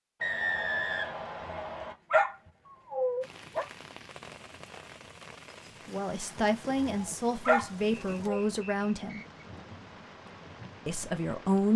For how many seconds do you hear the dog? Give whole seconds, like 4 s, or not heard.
4 s.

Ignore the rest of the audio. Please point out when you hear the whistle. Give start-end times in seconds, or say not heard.
0.2-1.9, 8.2-9.4.